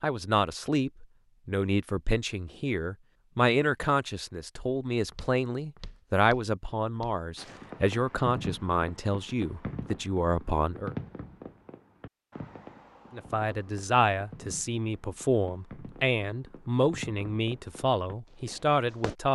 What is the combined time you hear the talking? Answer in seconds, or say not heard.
17 s.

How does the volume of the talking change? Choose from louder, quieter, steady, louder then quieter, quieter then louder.
steady.